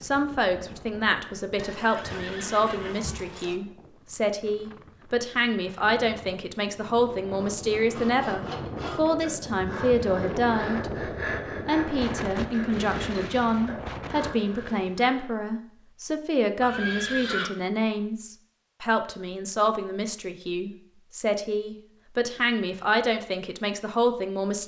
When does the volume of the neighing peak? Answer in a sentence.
The volume of the neighing peaks at 17 seconds.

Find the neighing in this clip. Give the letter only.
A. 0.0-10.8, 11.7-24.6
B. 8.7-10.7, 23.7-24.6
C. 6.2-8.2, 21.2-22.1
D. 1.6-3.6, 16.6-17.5
D.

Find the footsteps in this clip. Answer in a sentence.
The footsteps can't be heard in this clip.